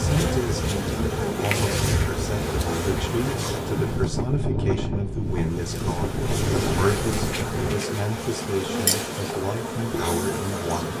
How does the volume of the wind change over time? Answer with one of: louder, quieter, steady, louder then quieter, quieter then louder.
steady.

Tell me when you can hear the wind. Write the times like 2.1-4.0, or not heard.
0.0-7.8.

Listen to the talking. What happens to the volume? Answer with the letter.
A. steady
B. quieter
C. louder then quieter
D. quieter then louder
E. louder
A.